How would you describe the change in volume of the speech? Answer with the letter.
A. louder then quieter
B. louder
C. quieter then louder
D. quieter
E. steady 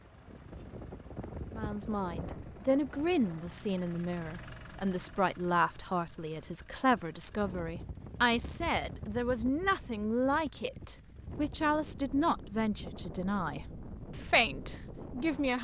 E.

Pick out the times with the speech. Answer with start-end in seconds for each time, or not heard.
1.5-15.5.